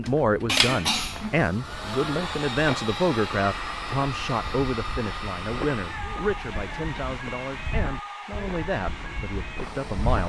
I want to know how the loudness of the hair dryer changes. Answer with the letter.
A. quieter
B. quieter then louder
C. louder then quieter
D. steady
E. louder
A.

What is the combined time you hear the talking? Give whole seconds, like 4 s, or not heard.
10 s.